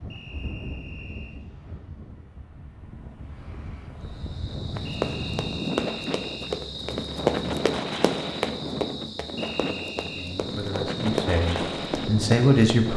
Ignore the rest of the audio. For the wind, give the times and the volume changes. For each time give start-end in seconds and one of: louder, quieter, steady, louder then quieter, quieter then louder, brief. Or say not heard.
0.0-12.9 louder.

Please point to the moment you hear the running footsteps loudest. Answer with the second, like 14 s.
7 s.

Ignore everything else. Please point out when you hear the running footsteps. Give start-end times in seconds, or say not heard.
4.7-12.8.